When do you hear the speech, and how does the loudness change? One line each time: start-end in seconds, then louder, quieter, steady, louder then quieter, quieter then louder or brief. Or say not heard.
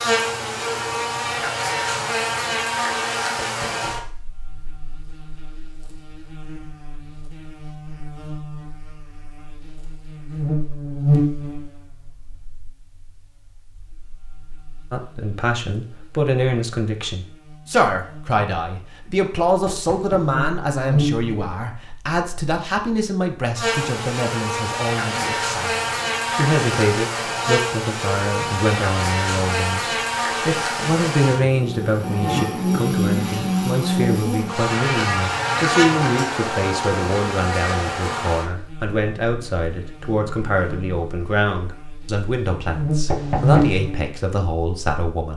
14.9-45.3 steady.